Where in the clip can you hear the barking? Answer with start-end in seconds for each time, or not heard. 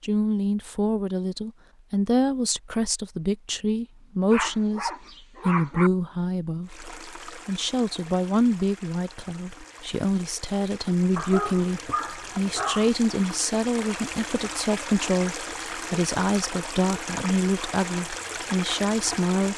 4.3-5.9, 11.2-12.9.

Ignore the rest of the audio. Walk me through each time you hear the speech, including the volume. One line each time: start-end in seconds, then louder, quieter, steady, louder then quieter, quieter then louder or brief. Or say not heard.
0.0-19.5 steady.